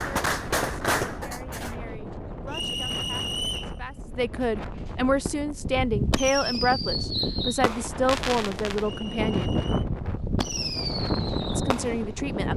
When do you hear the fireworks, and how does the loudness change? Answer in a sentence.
The fireworks can be heard briefly from 0.0 to 1.8 s; and from 5.2 to 12.5 s, at a steady volume.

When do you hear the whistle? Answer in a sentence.
You can hear the whistle from 2.5 to 3.8 s and from 8.8 to 9.8 s.